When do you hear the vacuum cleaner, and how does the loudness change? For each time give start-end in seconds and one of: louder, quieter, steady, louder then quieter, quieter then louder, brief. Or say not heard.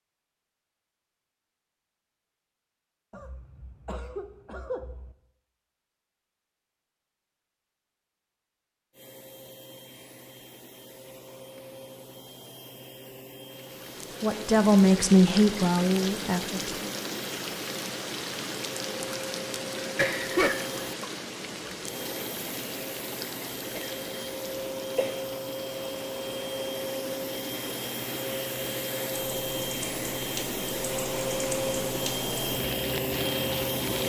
8.9-34.0 louder.